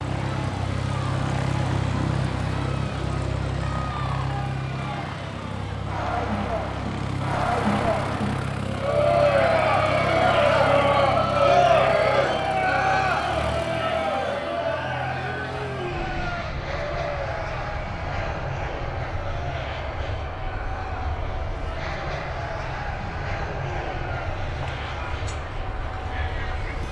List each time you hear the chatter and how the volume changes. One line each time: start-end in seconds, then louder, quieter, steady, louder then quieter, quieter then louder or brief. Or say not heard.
0.1-26.8 louder then quieter.